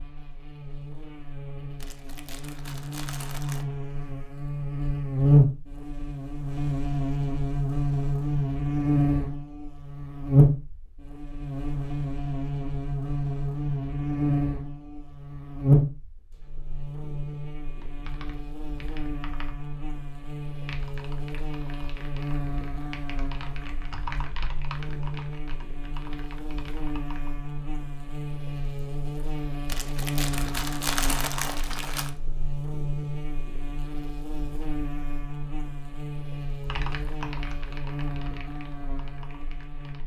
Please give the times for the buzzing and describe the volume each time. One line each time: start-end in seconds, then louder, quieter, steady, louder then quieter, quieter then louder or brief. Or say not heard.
0.0-40.0 quieter.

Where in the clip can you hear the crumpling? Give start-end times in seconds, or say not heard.
1.8-3.6, 29.6-32.1.